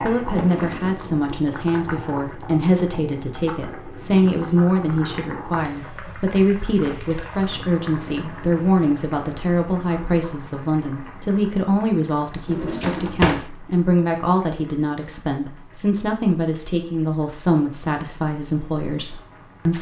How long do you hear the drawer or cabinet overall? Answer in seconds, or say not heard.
2 s.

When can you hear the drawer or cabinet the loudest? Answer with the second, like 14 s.
13 s.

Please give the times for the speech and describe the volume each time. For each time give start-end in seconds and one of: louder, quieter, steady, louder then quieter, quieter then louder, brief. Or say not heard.
0.0-19.7 steady.